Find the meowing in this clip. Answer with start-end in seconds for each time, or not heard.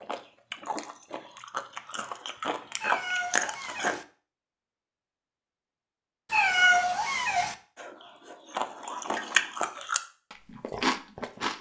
2.8-4.0, 6.3-7.5.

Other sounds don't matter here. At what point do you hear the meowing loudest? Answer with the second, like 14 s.
7 s.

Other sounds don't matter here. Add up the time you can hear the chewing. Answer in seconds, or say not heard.
8 s.